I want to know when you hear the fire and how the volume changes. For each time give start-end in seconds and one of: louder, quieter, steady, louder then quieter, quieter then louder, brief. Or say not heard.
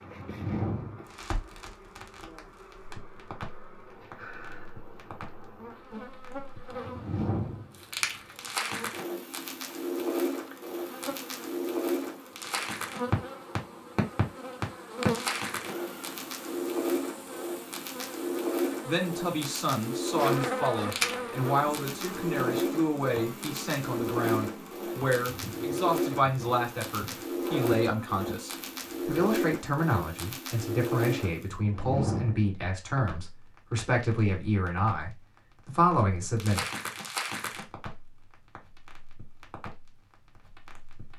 0.0-41.1 louder then quieter.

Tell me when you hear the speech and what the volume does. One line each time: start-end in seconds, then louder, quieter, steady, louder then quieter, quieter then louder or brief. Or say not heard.
18.9-36.6 steady.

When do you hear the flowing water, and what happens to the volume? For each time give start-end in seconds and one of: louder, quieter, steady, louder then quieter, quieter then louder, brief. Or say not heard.
not heard.